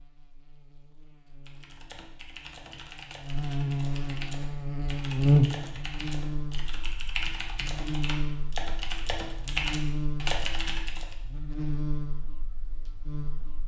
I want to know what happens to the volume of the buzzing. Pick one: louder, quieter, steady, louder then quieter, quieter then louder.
louder then quieter.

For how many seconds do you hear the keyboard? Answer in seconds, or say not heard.
10 s.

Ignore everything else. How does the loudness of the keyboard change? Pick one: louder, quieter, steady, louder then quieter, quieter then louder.
louder.